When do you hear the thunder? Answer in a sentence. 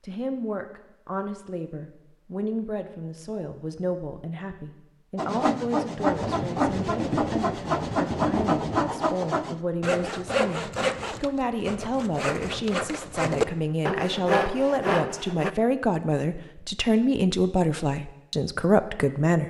The thunder can be heard from 6.0 to 8.9 s.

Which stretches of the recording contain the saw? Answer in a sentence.
The saw can be heard from 5.2 to 15.5 s.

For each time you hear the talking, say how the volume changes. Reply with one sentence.
The talking can be heard from 0.0 to 19.4 s, getting louder.